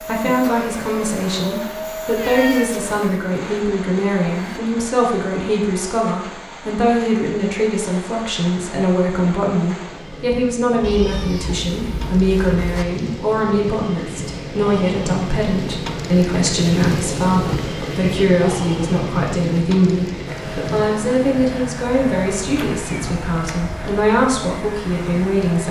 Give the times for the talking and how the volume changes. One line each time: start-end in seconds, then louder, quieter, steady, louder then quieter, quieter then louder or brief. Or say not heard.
0.1-25.6 steady.